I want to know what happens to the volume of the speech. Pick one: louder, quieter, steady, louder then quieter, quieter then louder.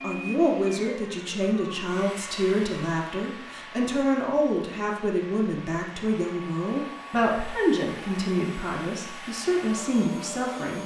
steady.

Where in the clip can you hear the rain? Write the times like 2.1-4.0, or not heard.
not heard.